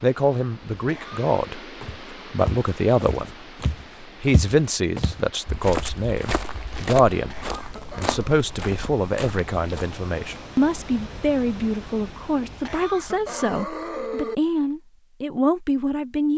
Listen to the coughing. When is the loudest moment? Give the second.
14 s.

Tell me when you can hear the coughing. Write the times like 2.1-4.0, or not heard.
0.8-1.3, 7.1-8.2, 12.3-14.4.